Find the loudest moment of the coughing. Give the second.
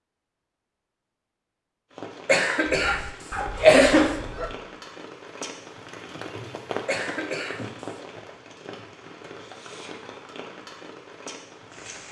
4 s.